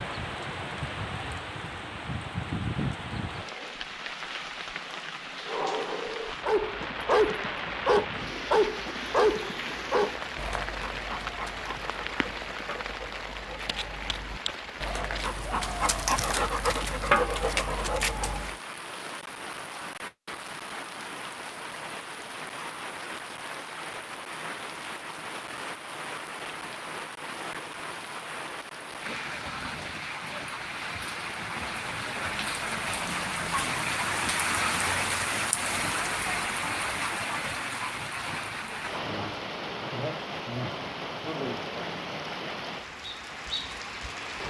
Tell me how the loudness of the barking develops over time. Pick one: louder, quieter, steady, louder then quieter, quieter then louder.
quieter then louder.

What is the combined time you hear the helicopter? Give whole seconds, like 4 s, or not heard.
not heard.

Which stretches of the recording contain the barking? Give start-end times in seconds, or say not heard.
6.5-18.6.